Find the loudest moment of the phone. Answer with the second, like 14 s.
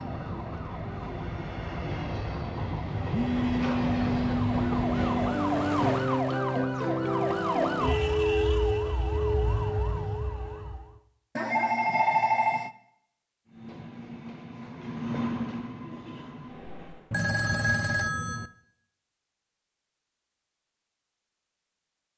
12 s.